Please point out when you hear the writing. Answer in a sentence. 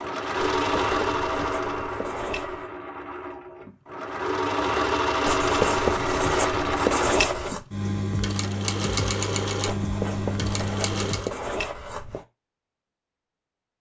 The writing can be heard from 0.6 to 2.7 s, from 5.2 to 7.6 s and from 9.7 to 12.2 s.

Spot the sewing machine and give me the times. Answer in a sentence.
You can hear the sewing machine from 0.0 to 11.3 s.